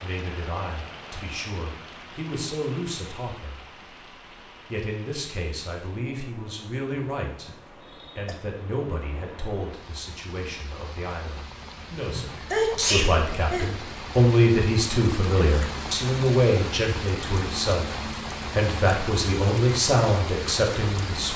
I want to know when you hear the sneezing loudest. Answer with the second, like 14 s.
13 s.